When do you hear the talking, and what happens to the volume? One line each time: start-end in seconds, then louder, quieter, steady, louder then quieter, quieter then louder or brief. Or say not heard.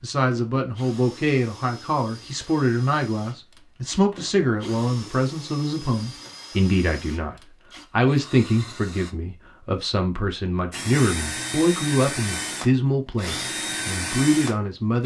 0.0-15.0 steady.